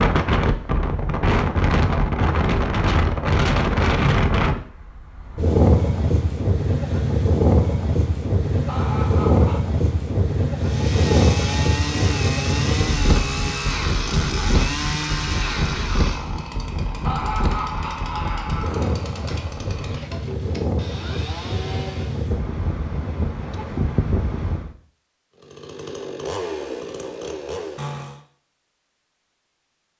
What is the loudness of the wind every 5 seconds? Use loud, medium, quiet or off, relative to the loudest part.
loud, loud, loud, medium, medium, off.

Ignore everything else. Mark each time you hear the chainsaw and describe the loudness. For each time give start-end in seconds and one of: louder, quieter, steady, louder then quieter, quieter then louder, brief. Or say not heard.
10.6-22.3 quieter
25.4-28.2 brief.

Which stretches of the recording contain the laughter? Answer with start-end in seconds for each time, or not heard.
8.7-9.6, 17.1-18.9.